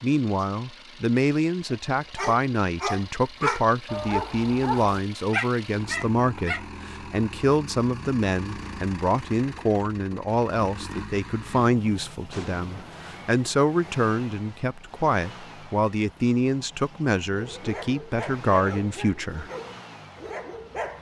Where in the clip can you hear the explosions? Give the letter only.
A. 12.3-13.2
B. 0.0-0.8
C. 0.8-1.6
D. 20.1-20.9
A.